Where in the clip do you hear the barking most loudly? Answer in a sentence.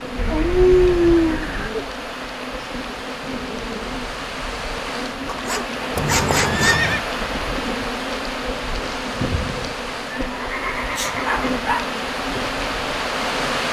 The volume of the barking peaks at 1 second.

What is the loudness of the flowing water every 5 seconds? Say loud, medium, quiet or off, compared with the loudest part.
medium, loud, loud.